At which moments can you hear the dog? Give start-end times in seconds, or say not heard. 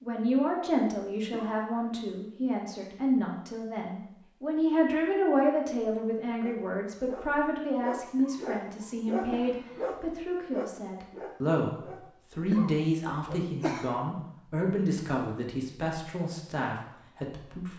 6.4-13.6.